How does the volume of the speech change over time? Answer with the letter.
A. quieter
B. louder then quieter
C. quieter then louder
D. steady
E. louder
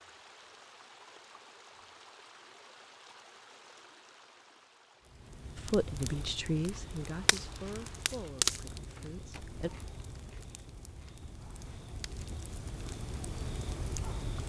A.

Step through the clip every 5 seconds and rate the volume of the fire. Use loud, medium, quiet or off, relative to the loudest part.
off, loud, medium.